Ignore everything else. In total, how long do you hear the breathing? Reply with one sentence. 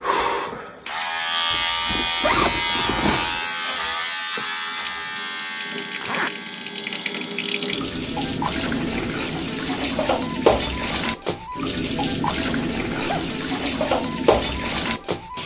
The breathing can't be heard in this clip.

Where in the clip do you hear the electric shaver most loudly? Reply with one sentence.
The volume of the electric shaver peaks at 2 seconds.